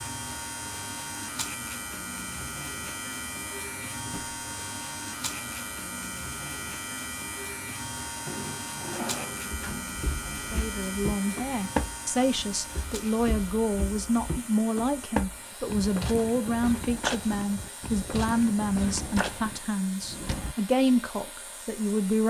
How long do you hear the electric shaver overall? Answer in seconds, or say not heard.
22 s.